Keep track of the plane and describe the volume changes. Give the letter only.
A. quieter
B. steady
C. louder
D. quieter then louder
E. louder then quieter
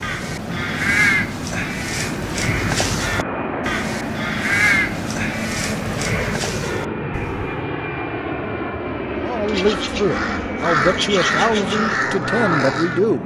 B.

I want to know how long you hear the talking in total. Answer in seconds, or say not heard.
4 s.